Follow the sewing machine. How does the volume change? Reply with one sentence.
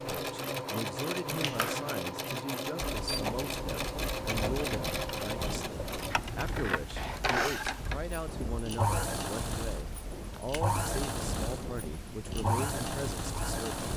The volume of the sewing machine stays about the same.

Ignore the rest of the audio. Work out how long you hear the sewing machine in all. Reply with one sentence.
The sewing machine can be heard for 14 seconds in total.